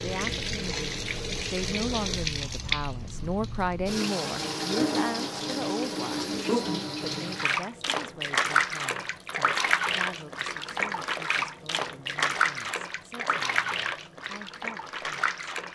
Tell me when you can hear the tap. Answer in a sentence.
You can hear the tap from 0.0 to 15.6 s.